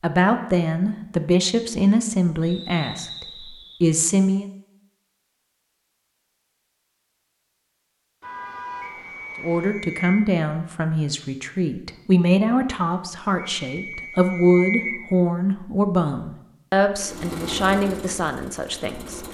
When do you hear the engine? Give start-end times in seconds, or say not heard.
16.9-19.2.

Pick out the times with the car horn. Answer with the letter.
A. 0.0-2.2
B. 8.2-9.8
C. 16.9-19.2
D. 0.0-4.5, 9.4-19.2
B.